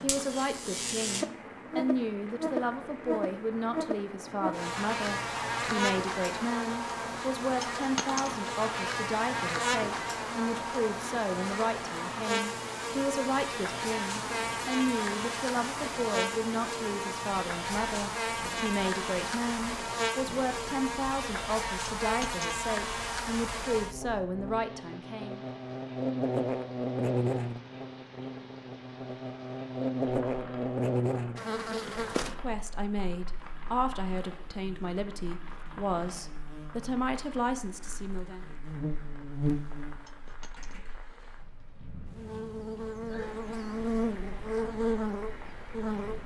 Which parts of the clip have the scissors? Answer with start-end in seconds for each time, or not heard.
not heard.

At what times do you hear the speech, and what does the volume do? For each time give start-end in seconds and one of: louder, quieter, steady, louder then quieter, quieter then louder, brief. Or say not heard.
0.0-25.4 steady
32.2-38.5 steady.